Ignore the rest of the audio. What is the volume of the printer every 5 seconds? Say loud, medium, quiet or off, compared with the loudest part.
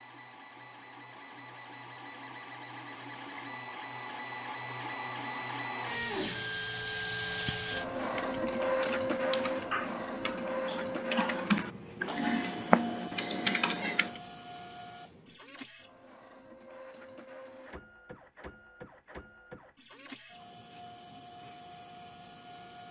medium, loud, medium, quiet, quiet.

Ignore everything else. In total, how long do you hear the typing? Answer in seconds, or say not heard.
6 s.